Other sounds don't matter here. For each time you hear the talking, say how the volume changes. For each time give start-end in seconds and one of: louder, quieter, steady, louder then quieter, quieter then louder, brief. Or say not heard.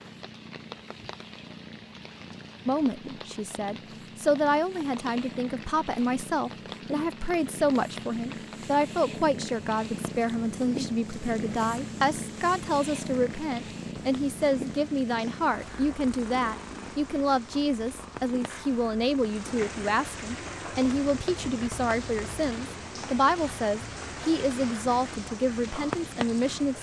2.6-26.7 steady.